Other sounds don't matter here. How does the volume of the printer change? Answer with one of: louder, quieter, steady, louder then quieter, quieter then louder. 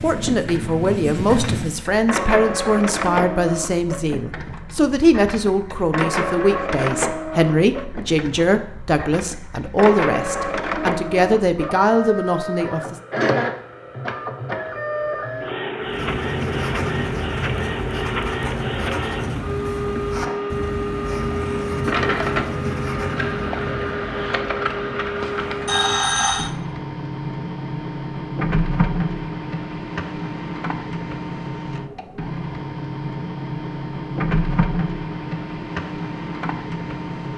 steady.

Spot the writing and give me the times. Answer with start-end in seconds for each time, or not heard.
0.0-1.9, 15.8-26.5.